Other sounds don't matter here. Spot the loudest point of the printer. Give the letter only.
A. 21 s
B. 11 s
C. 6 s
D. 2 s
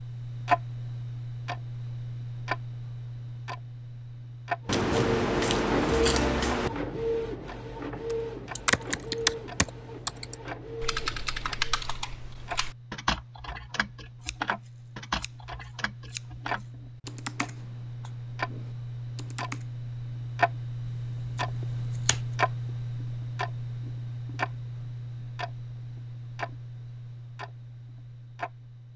C.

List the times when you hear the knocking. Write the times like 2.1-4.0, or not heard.
not heard.